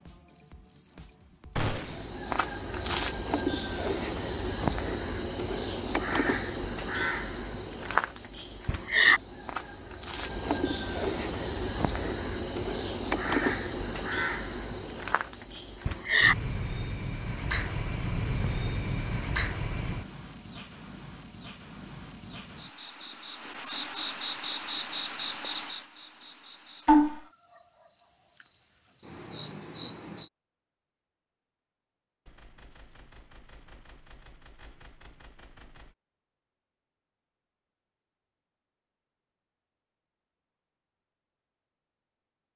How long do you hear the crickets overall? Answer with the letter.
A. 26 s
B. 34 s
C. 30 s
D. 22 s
C.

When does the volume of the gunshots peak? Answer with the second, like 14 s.
2 s.